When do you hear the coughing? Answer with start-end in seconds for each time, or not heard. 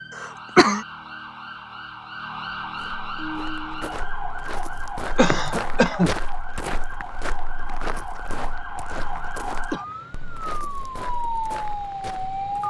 0.1-0.8, 5.2-6.1, 9.1-9.8.